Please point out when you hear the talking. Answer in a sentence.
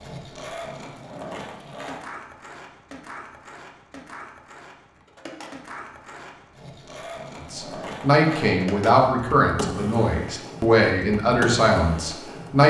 The talking can be heard from 7.5 to 12.6 s.